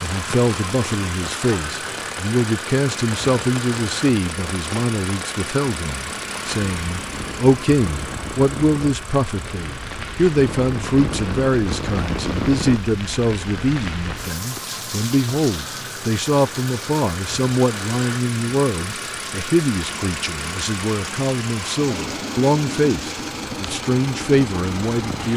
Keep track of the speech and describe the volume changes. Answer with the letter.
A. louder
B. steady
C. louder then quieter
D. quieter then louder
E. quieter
B.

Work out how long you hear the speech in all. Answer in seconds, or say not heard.
25 s.